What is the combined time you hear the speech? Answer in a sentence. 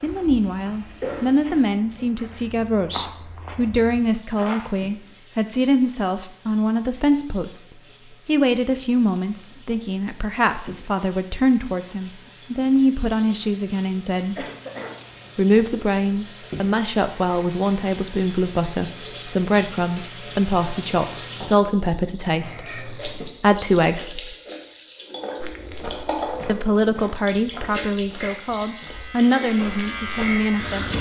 The speech can be heard for 28 seconds in total.